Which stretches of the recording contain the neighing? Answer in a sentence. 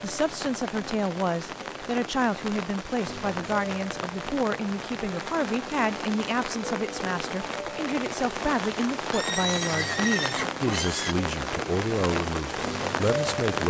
The neighing can be heard from 9.1 to 11.2 s.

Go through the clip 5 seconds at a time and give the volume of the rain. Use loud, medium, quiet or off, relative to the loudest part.
medium, loud, loud.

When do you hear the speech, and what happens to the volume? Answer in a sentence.
The speech can be heard from 0.0 to 13.6 s, at a steady volume.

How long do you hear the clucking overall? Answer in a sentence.
The clucking can't be heard in this clip.